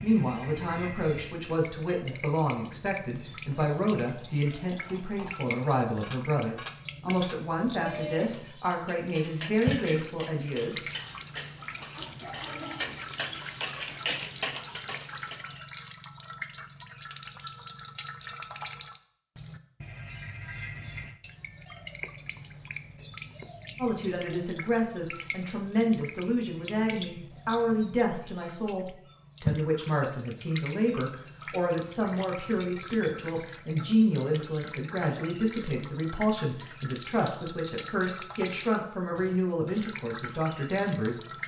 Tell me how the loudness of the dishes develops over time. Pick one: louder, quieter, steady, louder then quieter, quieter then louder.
louder.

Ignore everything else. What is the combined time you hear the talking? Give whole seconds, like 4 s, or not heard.
28 s.